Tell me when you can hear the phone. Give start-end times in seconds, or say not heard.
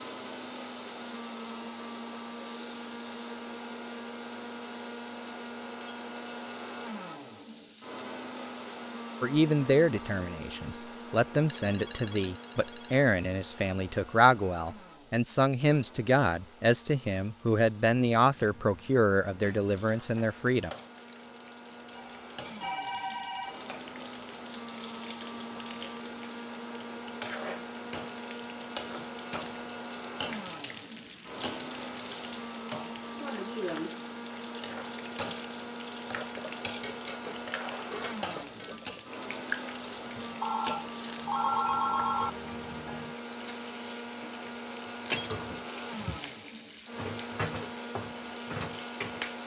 11.5-13.0, 21.9-23.7, 40.4-42.3.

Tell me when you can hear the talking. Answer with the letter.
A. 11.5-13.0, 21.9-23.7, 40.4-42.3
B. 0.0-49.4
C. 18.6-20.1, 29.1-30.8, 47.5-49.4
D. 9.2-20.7
D.